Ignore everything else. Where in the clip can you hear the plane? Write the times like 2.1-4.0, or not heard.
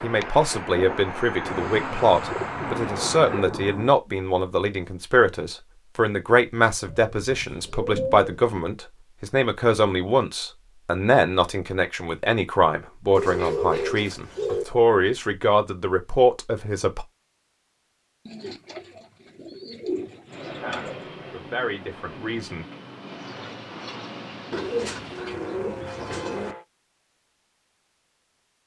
0.0-3.5, 20.2-26.6.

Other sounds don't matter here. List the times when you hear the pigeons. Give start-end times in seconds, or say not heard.
1.4-4.0, 6.8-8.5, 13.2-14.7, 18.2-20.9, 24.5-26.6.